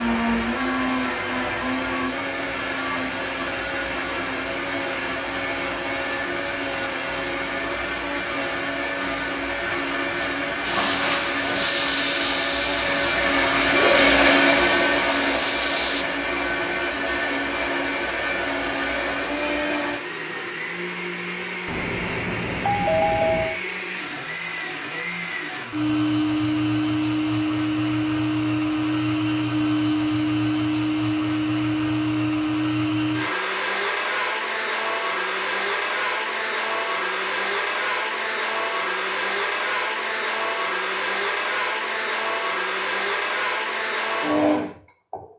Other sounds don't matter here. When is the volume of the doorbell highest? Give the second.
23 s.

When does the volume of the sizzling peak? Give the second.
12 s.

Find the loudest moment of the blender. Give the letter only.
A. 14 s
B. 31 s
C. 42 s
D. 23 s
A.